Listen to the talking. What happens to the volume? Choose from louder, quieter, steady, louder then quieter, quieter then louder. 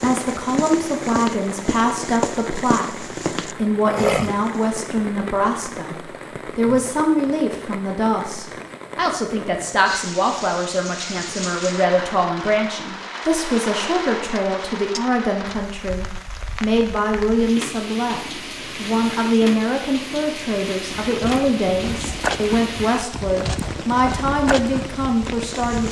steady.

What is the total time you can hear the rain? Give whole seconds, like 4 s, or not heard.
26 s.